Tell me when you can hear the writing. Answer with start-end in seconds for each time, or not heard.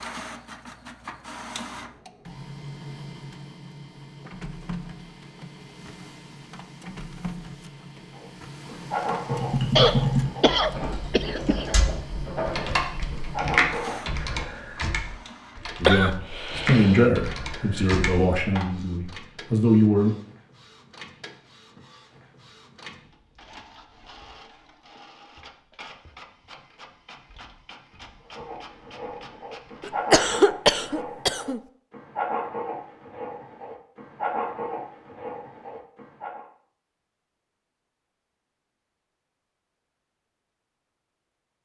8.1-14.6, 28.3-36.5.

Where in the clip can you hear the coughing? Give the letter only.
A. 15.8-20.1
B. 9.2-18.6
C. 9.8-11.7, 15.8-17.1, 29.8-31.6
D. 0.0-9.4
C.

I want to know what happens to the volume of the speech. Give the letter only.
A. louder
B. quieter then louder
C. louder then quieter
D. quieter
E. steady
B.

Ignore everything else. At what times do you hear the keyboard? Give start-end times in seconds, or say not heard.
9.2-18.6.